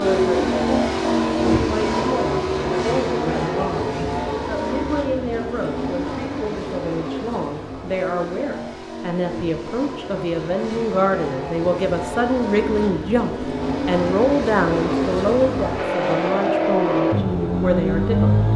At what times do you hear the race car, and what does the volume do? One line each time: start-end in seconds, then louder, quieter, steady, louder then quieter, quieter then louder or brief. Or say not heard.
0.0-18.5 quieter then louder.